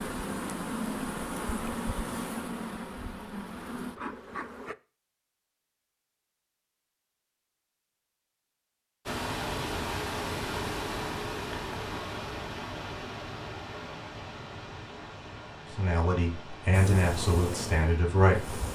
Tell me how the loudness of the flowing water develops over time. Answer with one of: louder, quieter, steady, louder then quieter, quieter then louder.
quieter.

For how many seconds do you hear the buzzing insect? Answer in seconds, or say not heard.
7 s.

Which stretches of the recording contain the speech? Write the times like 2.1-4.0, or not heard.
15.7-18.6.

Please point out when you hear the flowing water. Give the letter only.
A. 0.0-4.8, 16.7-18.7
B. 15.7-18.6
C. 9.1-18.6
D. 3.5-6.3
C.